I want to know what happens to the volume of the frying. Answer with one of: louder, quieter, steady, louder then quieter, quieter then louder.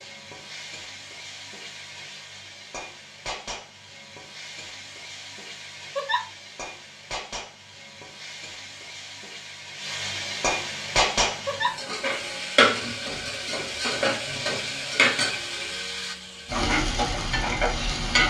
louder.